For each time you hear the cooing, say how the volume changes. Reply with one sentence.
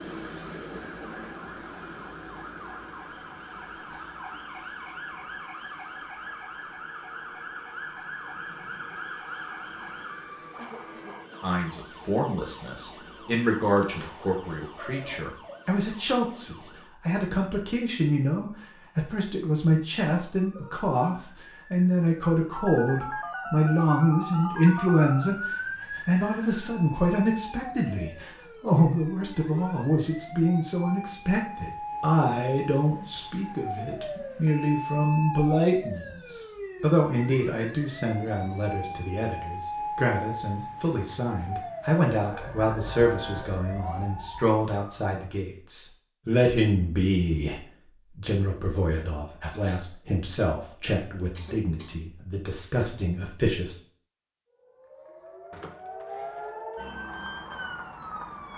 The cooing can't be heard in this clip.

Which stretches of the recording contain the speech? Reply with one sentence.
You can hear the speech from 11.4 to 53.8 s.